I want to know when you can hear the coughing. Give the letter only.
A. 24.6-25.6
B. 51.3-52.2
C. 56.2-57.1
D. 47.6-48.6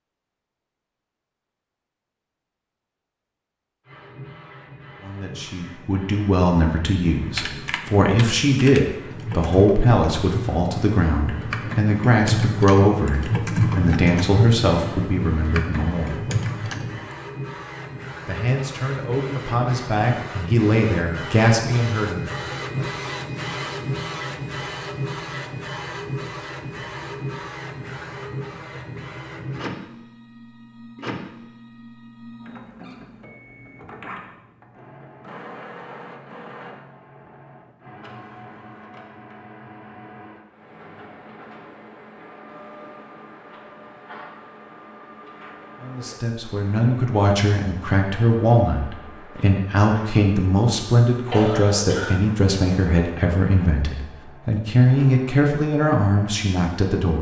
B.